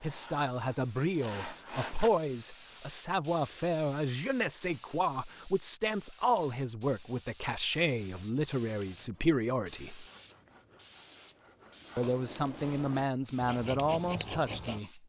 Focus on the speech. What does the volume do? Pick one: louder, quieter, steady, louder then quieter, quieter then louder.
steady.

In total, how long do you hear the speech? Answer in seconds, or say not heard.
13 s.